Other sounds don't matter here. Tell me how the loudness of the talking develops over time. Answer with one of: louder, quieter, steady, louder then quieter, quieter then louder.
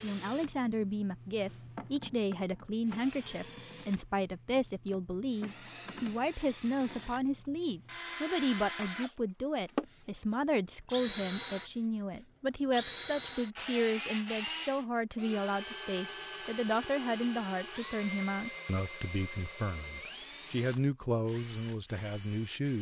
steady.